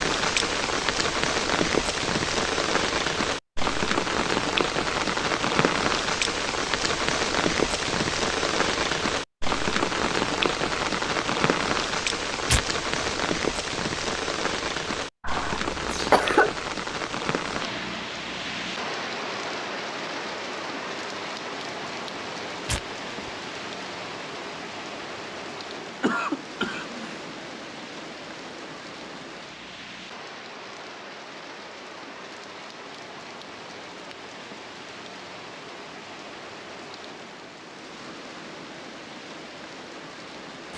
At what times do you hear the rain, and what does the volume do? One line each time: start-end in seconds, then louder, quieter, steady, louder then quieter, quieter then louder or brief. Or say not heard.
0.0-40.7 quieter.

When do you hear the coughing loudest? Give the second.
16 s.